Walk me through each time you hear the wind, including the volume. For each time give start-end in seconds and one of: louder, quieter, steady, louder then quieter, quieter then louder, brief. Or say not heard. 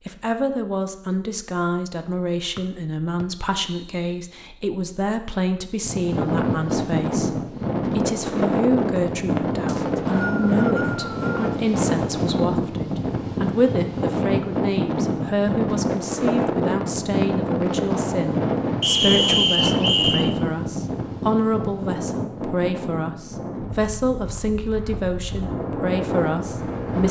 5.8-27.0 quieter.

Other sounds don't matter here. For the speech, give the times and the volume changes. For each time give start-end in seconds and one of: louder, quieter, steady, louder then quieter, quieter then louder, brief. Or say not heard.
0.1-27.0 steady.